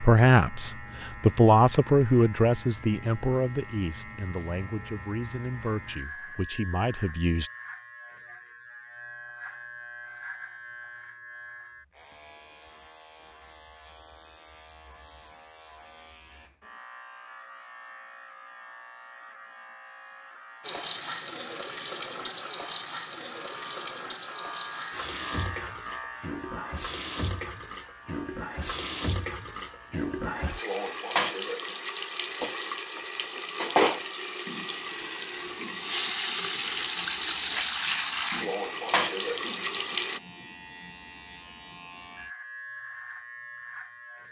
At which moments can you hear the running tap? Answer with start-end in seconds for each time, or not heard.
20.6-40.2.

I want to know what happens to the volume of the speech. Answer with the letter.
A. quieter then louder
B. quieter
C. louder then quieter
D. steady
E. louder
B.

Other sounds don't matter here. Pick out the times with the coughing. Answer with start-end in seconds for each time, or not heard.
not heard.